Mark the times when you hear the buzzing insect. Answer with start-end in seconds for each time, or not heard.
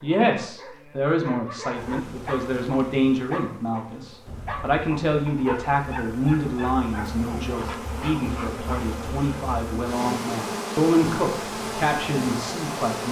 1.7-13.0.